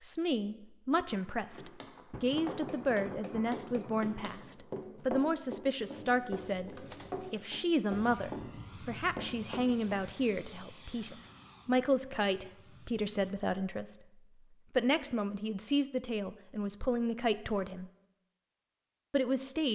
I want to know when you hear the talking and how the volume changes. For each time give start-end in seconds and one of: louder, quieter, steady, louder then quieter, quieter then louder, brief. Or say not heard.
0.0-17.9 steady
19.1-19.7 brief.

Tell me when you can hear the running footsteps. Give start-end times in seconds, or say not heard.
1.4-10.1.